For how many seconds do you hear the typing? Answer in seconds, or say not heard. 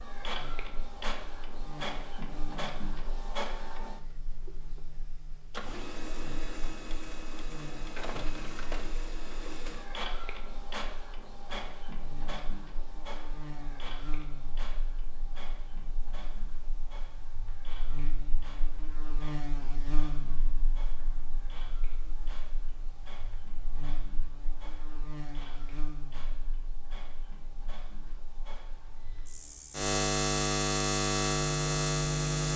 not heard.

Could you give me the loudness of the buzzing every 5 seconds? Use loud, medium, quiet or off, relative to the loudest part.
quiet, quiet, quiet, quiet, quiet, quiet, loud.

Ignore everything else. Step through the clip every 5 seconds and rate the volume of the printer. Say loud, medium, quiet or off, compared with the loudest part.
loud, loud, loud, quiet, quiet, quiet, off.